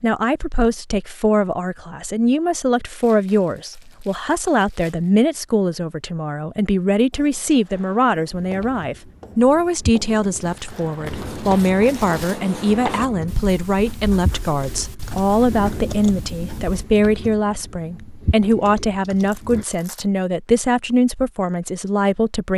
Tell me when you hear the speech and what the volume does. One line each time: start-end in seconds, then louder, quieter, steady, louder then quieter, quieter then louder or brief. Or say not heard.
0.0-22.5 steady.